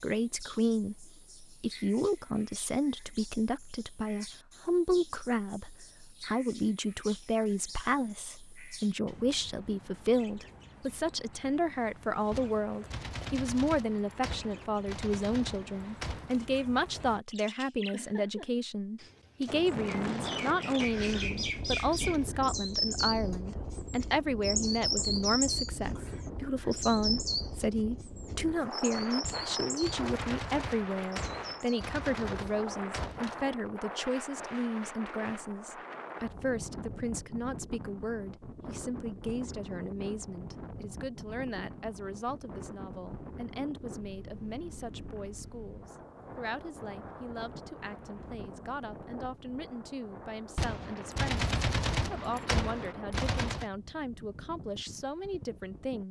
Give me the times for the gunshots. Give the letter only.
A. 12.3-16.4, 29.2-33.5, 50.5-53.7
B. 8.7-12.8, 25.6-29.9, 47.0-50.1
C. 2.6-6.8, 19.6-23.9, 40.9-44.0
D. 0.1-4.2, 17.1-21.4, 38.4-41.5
A.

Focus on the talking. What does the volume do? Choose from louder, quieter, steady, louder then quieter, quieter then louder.
quieter.